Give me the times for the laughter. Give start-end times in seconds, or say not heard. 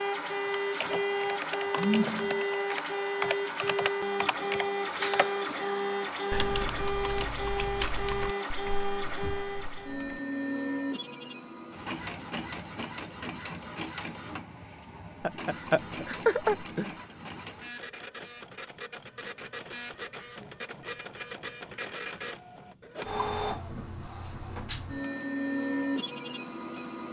15.2-16.9.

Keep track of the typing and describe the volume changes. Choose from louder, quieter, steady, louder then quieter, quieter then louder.
quieter.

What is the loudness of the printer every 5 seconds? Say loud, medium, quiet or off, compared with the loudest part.
loud, loud, medium, medium, medium, loud.